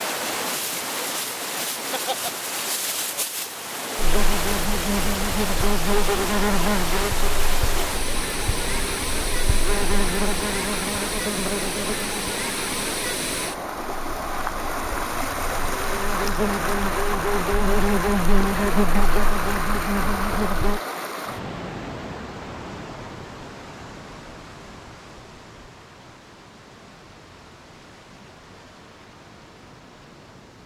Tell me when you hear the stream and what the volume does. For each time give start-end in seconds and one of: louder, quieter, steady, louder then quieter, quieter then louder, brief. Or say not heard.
0.0-30.6 quieter.